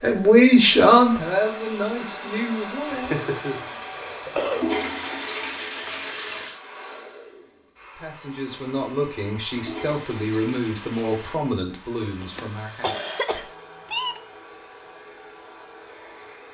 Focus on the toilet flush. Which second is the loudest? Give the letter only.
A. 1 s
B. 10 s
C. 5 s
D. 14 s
C.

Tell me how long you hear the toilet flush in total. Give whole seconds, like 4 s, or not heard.
4 s.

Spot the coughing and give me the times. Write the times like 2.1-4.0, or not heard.
2.9-4.7, 12.2-14.2.